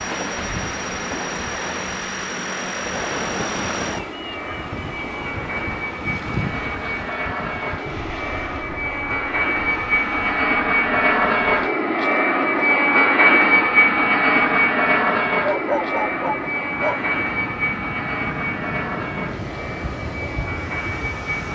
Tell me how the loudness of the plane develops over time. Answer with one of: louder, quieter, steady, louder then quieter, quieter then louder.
louder then quieter.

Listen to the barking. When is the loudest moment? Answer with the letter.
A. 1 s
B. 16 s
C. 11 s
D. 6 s
B.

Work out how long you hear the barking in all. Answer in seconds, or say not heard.
2 s.